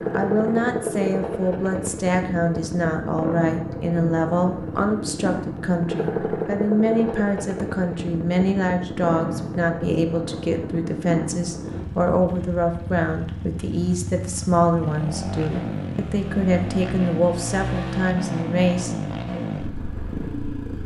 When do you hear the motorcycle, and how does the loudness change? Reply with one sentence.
The motorcycle can be heard from 0.0 to 20.8 s, at a steady volume.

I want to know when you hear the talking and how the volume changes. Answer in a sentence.
The talking can be heard from 0.1 to 19.4 s, at a steady volume.